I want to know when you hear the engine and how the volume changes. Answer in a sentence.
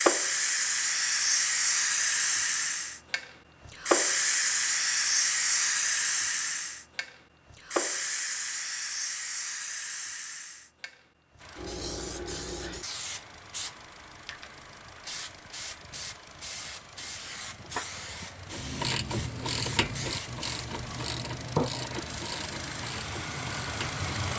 You can hear the engine from 11.3 to 24.3 s, getting louder.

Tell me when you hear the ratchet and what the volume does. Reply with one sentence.
The ratchet can be heard from 18.5 to 24.1 s, getting quieter.